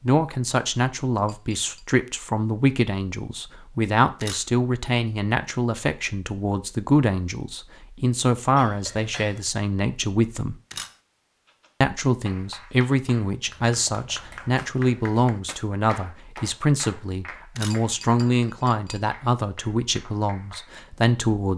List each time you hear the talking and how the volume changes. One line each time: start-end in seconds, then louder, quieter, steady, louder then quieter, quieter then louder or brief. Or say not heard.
0.0-10.6 steady
11.8-21.5 steady.